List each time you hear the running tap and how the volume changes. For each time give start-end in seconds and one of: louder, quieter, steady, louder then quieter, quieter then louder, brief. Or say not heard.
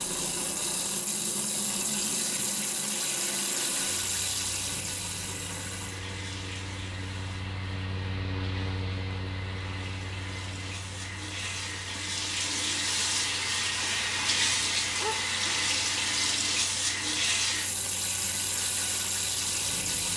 0.0-20.1 quieter then louder.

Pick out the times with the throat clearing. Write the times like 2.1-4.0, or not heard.
14.9-15.8.